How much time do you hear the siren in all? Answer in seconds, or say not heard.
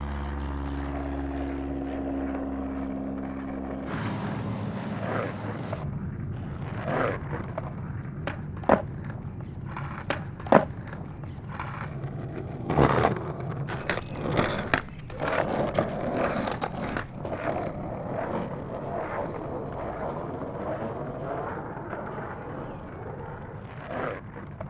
not heard.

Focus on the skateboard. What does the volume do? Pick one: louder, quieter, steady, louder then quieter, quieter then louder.
louder then quieter.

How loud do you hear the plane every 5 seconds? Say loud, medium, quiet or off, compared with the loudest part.
loud, loud, medium, medium, medium.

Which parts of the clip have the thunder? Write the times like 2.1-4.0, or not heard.
not heard.